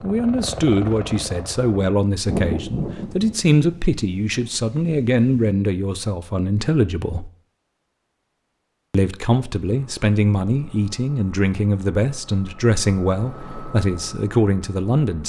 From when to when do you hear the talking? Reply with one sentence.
You can hear the talking from 0.0 to 7.3 s and from 8.9 to 15.2 s.